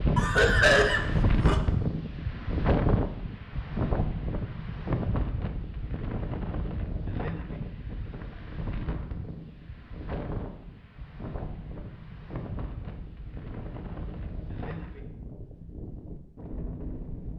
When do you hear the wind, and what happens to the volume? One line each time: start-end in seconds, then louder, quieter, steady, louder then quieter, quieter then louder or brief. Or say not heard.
0.0-17.3 quieter.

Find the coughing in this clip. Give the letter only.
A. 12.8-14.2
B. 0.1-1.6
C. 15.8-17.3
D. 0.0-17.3
B.